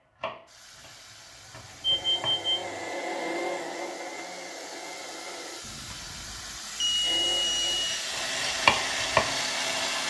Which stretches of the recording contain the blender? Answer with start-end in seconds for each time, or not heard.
1.8-5.6, 7.0-10.0.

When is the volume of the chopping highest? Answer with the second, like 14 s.
9 s.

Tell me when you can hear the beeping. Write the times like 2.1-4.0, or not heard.
1.8-2.8, 5.6-8.1.